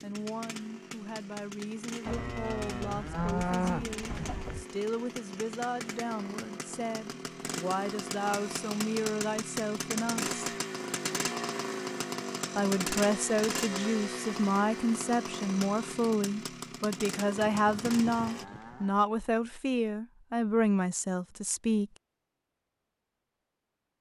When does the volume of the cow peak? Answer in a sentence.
The volume of the cow peaks at 4 seconds.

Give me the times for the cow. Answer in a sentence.
The cow can be heard from 2.0 to 4.7 s and from 17.4 to 18.9 s.